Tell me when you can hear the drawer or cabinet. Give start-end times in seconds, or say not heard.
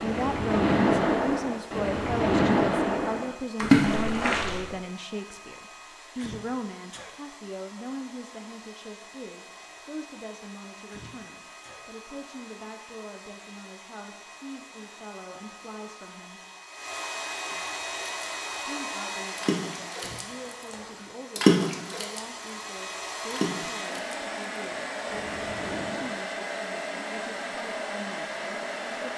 not heard.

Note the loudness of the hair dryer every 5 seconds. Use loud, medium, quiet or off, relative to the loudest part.
quiet, quiet, quiet, loud, loud, loud.